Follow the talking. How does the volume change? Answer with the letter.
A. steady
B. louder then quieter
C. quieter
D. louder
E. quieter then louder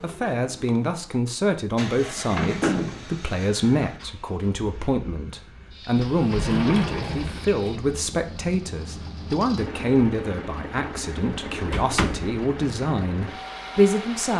A.